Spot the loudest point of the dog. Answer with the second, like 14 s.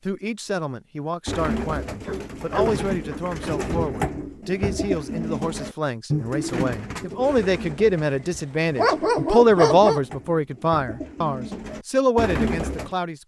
9 s.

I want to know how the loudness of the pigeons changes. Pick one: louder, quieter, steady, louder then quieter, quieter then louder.
quieter then louder.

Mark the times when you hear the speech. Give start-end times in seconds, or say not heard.
0.1-13.2.